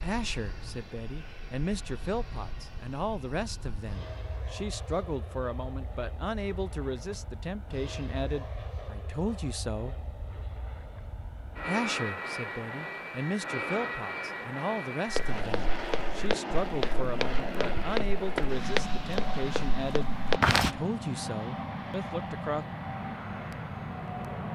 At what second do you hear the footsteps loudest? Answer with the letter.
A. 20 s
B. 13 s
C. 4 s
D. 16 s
A.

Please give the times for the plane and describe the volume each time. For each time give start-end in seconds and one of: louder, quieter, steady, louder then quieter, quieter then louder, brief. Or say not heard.
0.0-24.5 louder.